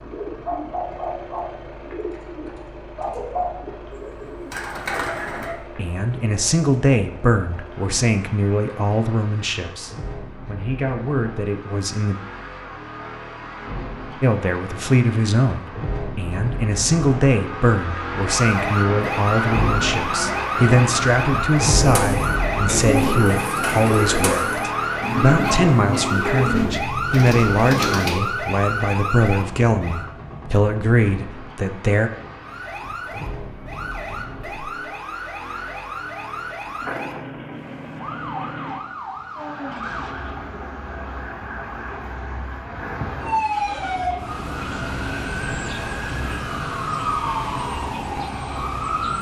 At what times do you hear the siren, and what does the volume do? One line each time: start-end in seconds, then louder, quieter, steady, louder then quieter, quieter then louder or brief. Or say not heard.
18.1-30.1 steady
32.4-49.1 louder.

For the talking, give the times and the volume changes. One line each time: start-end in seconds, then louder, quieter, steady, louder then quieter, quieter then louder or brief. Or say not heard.
5.8-12.2 quieter then louder
14.2-32.1 steady.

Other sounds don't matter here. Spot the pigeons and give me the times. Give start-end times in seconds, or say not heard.
0.0-5.5, 21.8-28.2.